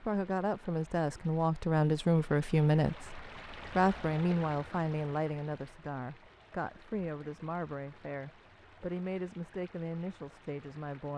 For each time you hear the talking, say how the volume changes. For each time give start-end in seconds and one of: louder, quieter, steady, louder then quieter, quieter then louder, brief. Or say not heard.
0.0-11.1 quieter.